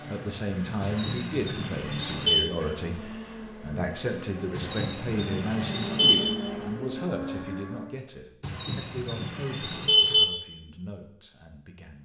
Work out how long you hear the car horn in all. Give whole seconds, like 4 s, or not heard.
5 s.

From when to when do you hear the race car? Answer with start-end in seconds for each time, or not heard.
0.0-8.0.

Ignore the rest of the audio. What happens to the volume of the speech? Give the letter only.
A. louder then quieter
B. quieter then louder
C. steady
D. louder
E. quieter
E.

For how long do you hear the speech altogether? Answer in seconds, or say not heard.
12 s.